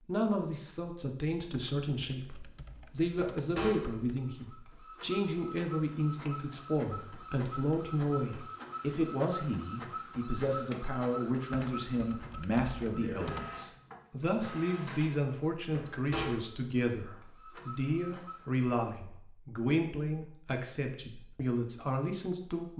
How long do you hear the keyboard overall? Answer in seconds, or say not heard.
5 s.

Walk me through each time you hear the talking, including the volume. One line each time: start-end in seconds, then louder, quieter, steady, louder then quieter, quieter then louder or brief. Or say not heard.
0.1-22.7 steady.